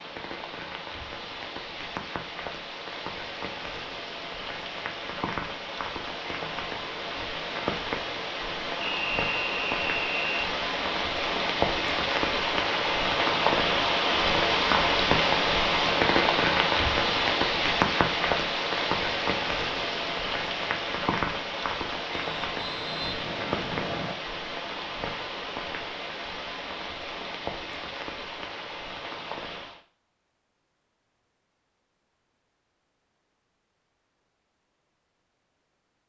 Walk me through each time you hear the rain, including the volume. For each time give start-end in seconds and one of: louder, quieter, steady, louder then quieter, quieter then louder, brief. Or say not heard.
0.0-29.8 louder then quieter.